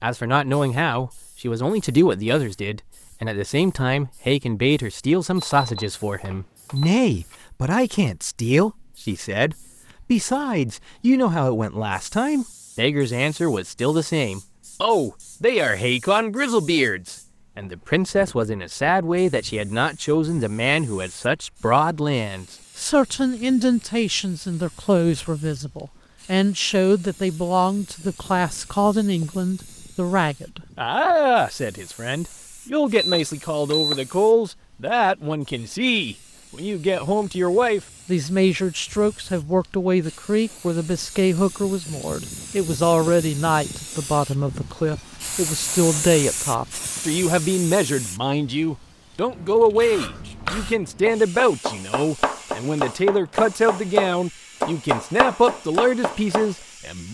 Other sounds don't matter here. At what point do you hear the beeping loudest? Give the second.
34 s.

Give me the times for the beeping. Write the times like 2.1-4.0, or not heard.
5.3-7.3, 33.0-34.0.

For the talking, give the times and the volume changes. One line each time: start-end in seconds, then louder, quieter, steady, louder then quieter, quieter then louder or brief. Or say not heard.
0.0-57.0 steady.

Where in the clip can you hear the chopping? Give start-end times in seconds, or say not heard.
50.0-56.5.